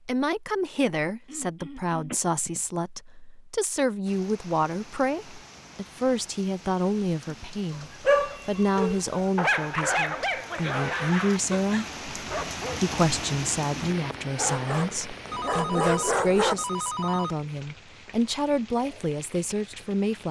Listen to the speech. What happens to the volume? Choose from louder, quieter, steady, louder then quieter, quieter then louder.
steady.